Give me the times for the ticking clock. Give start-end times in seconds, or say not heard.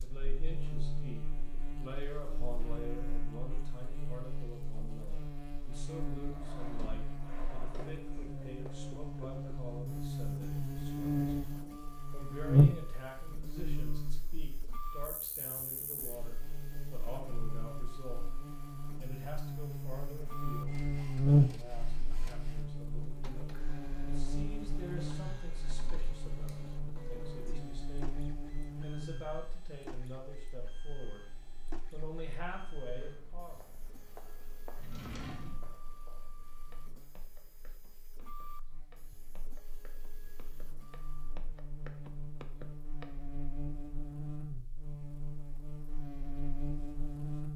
not heard.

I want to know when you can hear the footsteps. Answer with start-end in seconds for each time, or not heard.
33.0-43.0.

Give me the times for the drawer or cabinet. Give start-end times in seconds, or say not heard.
6.3-8.2, 26.4-27.4, 34.8-35.7.